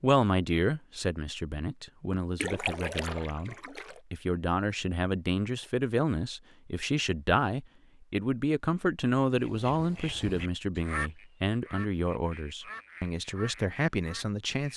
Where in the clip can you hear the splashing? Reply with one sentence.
The splashing can be heard from 2.4 to 4.0 s.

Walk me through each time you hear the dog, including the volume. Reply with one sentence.
You can't hear the dog here.